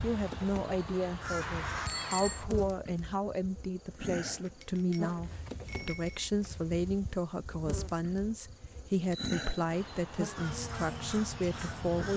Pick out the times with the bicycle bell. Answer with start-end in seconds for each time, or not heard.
1.4-2.5, 4.2-6.2, 8.9-9.3.